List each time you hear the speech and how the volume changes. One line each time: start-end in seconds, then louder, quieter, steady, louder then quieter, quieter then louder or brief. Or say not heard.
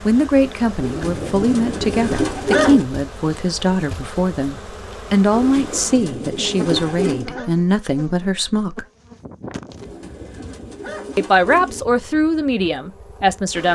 0.1-8.8 steady
11.2-13.7 brief.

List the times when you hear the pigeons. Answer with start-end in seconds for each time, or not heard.
0.8-2.9, 5.3-7.3, 9.8-11.8.